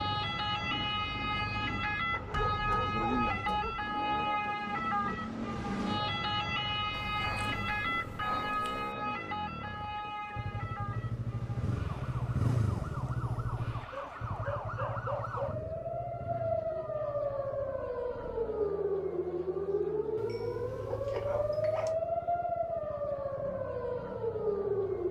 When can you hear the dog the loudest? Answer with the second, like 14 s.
3 s.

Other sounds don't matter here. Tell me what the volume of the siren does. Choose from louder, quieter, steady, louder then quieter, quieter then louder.
quieter then louder.